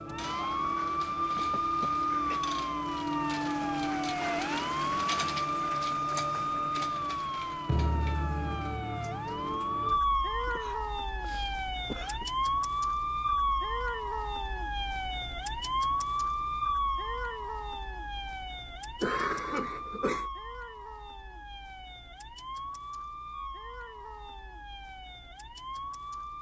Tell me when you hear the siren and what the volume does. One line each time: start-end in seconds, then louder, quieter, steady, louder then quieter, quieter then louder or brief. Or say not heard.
0.0-26.3 quieter.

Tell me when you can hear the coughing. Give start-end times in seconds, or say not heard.
1.2-2.5, 10.4-12.2, 19.0-20.3.